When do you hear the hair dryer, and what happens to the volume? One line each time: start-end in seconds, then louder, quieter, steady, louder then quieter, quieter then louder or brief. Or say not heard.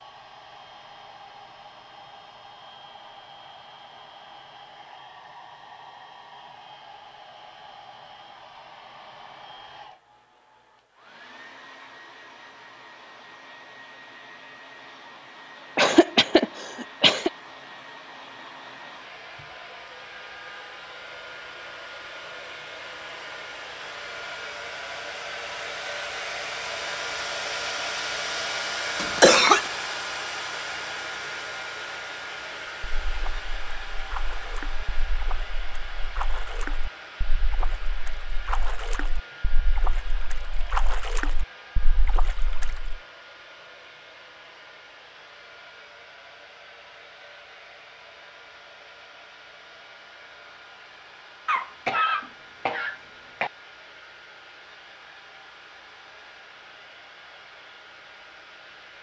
0.0-58.9 louder then quieter.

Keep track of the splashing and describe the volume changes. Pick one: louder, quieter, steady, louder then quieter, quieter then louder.
louder.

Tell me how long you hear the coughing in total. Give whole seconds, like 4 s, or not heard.
4 s.